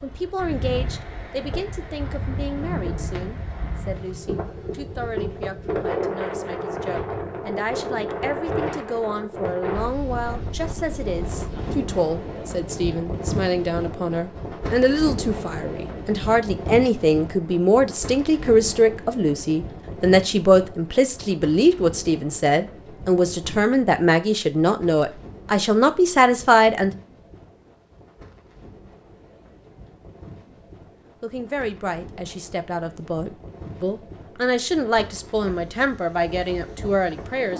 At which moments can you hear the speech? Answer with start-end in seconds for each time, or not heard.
0.0-26.9, 31.2-37.5.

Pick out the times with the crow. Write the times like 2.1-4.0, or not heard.
not heard.